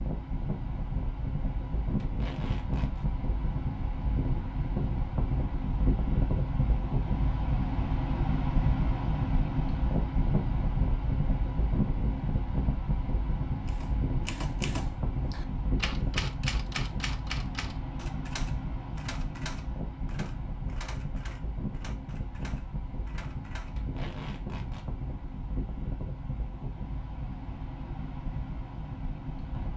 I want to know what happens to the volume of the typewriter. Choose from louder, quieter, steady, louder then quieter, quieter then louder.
quieter.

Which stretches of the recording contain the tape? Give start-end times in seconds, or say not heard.
2.0-3.0, 23.8-24.9.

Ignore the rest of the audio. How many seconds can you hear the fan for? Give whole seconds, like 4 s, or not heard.
30 s.